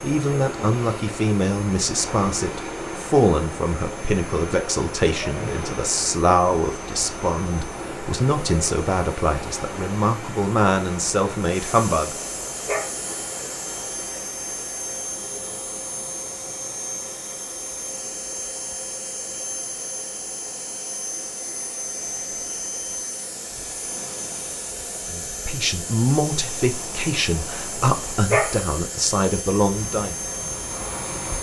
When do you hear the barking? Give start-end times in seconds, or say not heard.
12.7-13.4, 28.3-29.1.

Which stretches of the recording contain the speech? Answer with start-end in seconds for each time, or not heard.
0.0-12.2, 25.1-30.1.